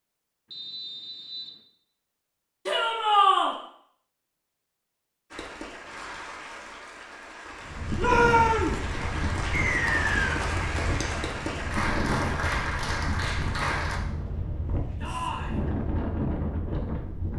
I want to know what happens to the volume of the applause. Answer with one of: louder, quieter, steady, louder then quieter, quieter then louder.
louder.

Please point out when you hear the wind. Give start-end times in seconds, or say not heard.
7.6-17.3.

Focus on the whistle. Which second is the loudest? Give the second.
10 s.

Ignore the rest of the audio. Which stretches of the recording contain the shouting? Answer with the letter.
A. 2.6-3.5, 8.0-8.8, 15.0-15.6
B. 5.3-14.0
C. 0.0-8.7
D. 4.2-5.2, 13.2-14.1
A.